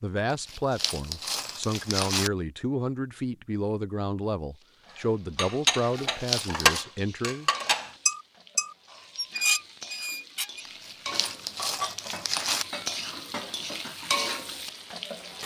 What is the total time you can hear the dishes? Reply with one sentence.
You can hear the dishes for 9 seconds altogether.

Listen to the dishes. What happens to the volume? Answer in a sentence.
The loudness of the dishes goes down.